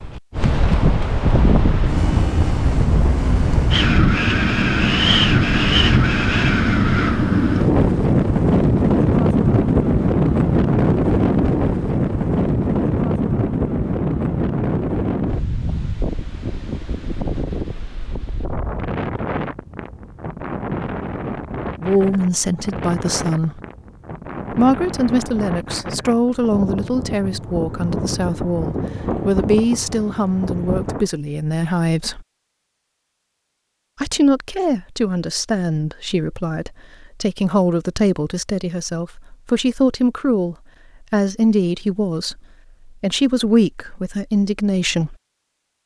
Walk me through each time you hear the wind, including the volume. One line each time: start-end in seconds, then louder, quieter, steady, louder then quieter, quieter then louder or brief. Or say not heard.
0.0-31.1 quieter.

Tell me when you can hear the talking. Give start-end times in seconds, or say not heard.
21.8-23.6, 24.5-32.2, 34.0-45.1.